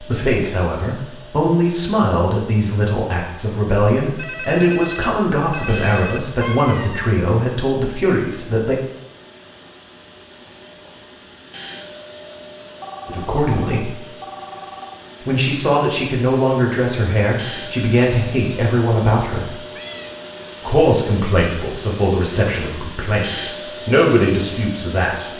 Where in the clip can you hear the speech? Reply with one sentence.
The speech can be heard from 0.0 to 8.8 s, from 13.1 to 13.9 s, from 15.2 to 19.5 s and from 20.6 to 25.3 s.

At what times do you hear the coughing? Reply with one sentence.
The coughing can't be heard in this clip.